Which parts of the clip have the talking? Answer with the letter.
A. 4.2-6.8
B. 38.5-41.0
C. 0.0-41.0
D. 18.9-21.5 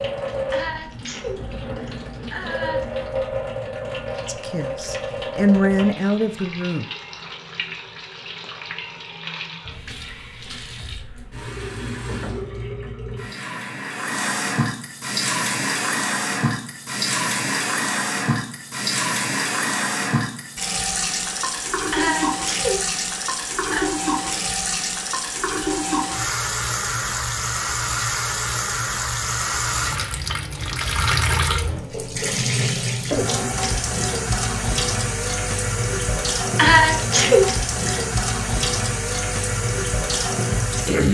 A.